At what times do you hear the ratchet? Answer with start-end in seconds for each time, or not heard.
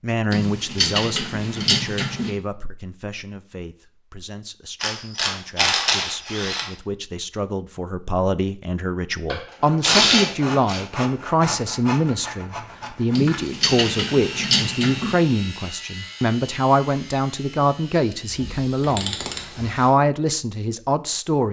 0.3-2.3, 4.8-6.7, 9.3-10.8, 13.2-15.2, 18.3-19.6.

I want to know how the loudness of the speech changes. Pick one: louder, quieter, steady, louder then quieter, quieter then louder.
louder.